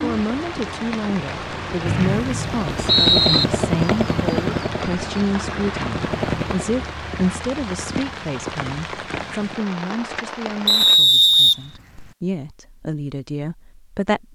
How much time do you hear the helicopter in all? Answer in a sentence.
The helicopter can be heard for 4 seconds in total.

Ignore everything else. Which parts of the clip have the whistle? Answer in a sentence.
The whistle can be heard from 1.9 to 3.5 s and from 10.7 to 12.1 s.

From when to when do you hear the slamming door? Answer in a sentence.
You can't hear the slamming door here.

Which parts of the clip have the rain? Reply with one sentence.
The rain can be heard from 0.0 to 11.0 s.